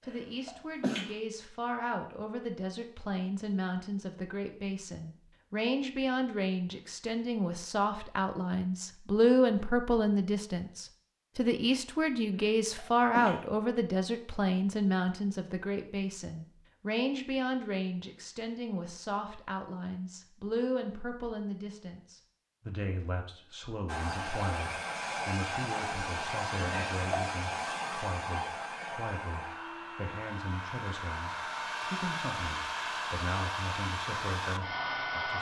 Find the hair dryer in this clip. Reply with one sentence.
The hair dryer can be heard from 23.9 to 35.3 s.